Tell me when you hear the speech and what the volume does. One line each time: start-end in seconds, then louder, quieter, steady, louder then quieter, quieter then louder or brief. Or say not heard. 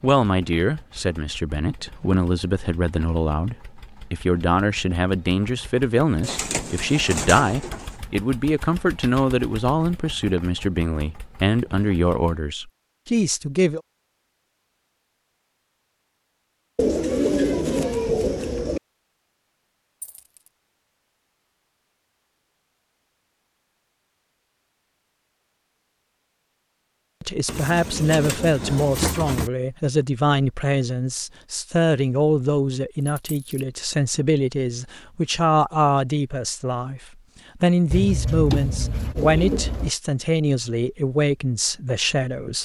0.0-13.8 steady
27.2-42.6 steady.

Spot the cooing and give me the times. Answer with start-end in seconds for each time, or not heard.
6.2-8.0, 16.8-18.8, 27.4-29.5, 37.9-39.9.